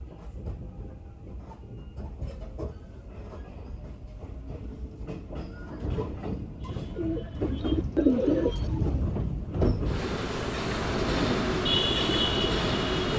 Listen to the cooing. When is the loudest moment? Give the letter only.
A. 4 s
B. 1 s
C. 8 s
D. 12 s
C.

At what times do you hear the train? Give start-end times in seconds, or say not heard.
0.0-13.1.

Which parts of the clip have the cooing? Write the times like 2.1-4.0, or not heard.
6.7-9.1, 11.0-13.1.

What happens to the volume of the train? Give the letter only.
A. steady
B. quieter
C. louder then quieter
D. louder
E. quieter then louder
D.